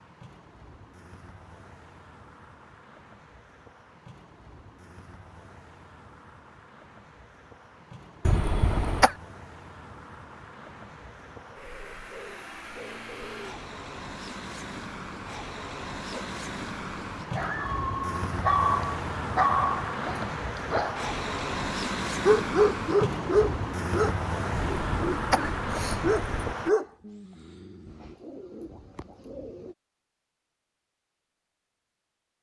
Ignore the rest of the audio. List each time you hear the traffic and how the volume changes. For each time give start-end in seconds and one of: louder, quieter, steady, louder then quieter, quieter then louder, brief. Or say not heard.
0.0-26.7 louder.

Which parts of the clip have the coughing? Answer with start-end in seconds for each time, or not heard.
8.2-9.2, 24.5-26.6.